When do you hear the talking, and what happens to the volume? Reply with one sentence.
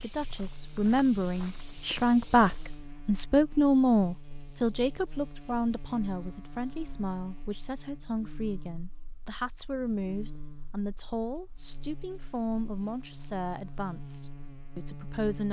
You can hear the talking from 0.0 to 15.4 s, getting quieter.